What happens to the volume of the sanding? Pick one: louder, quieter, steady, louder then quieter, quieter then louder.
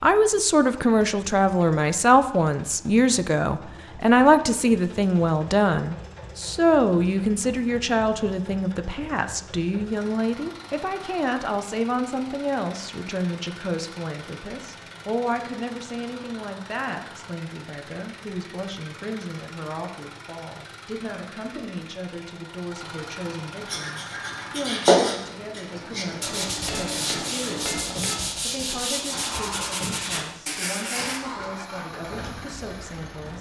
quieter.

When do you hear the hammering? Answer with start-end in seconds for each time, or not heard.
26.6-28.4.